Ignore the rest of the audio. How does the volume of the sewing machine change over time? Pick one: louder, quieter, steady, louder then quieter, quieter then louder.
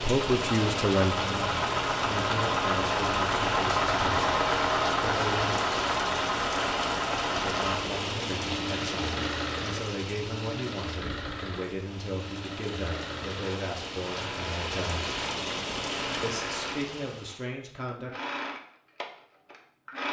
quieter.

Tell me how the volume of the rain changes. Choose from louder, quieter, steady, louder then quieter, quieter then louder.
quieter then louder.